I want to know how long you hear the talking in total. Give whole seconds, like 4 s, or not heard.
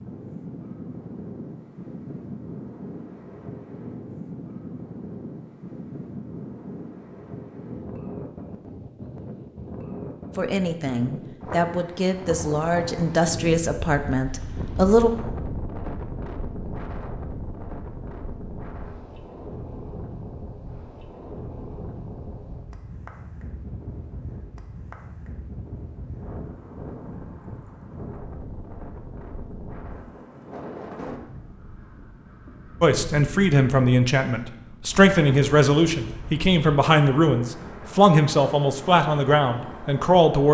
12 s.